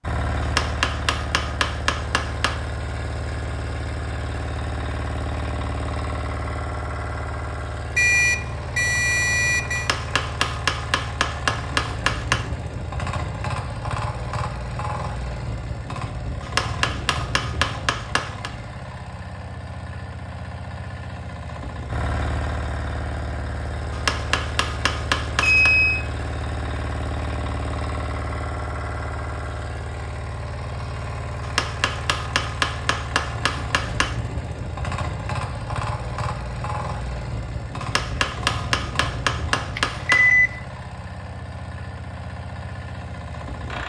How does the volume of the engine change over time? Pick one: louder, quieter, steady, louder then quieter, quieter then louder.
steady.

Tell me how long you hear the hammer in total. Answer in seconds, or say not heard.
14 s.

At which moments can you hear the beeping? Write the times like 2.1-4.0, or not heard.
8.0-9.9, 25.4-26.0, 39.8-40.5.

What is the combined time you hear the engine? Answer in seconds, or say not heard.
44 s.